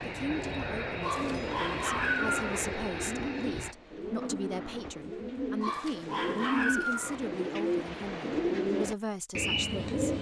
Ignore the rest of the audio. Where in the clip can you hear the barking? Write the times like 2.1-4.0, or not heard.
1.0-2.6, 5.6-7.2.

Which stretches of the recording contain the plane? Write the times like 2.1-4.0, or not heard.
0.0-3.8.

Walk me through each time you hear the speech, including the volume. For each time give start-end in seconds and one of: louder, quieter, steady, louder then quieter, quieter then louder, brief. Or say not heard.
0.1-10.1 steady.